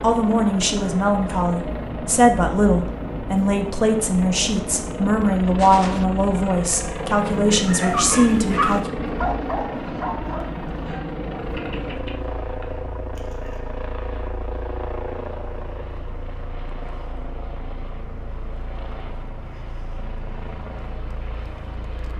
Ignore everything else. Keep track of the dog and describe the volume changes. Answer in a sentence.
The volume of the dog goes down.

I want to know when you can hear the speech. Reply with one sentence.
The speech can be heard from 0.0 to 8.9 s.